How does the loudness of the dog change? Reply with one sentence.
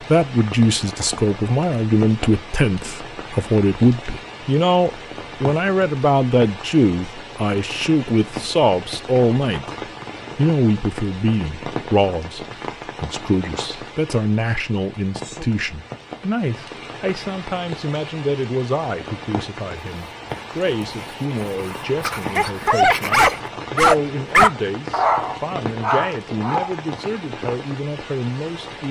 The volume of the dog goes up, then down.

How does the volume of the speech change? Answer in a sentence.
The volume of the speech goes down.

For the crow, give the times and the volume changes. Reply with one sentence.
The crow can't be heard in this clip.